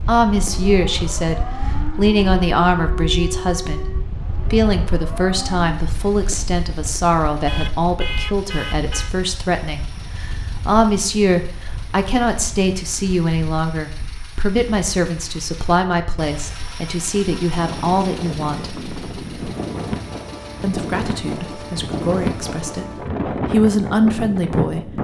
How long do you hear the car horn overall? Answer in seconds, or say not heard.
2 s.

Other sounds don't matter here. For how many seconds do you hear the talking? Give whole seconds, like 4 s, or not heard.
23 s.